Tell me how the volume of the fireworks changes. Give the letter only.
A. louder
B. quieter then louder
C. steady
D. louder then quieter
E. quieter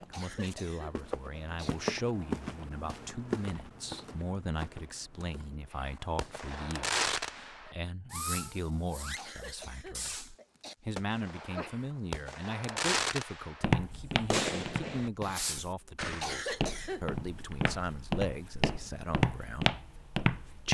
B.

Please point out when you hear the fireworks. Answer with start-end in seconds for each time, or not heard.
5.7-10.3, 10.9-16.2.